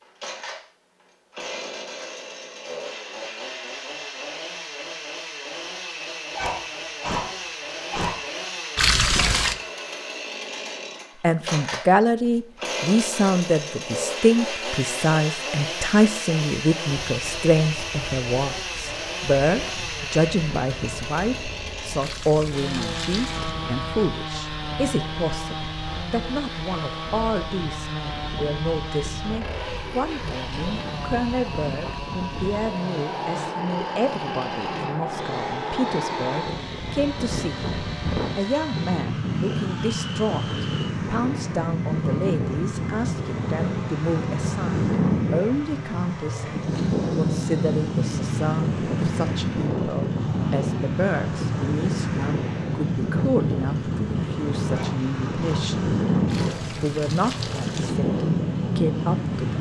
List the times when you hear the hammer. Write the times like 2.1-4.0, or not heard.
not heard.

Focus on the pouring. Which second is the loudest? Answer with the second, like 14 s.
9 s.